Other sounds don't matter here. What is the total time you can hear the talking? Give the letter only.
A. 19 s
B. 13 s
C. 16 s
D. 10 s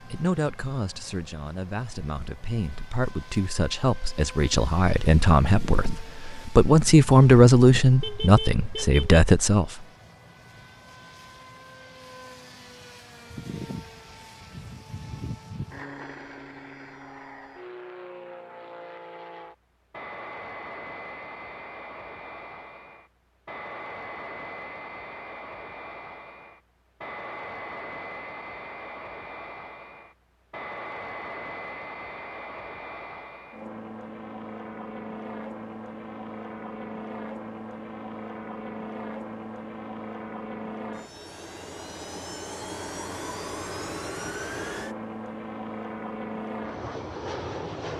D.